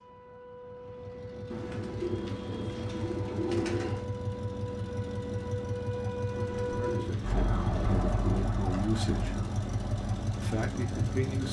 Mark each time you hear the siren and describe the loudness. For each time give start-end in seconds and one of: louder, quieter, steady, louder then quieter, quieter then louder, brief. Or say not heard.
0.0-11.4 louder then quieter.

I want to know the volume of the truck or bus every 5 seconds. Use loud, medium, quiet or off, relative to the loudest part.
medium, loud, loud.